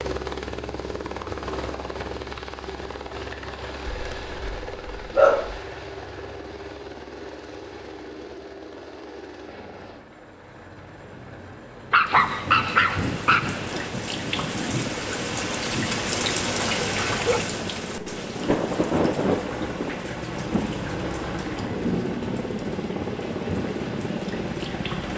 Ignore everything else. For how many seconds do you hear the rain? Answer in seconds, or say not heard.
13 s.